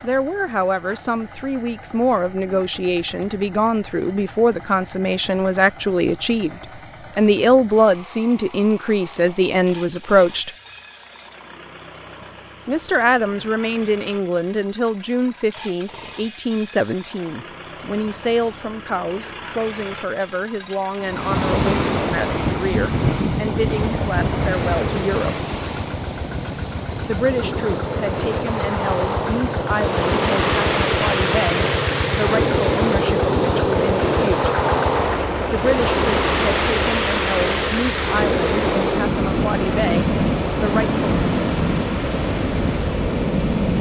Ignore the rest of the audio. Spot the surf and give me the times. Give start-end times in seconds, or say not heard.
21.0-43.7.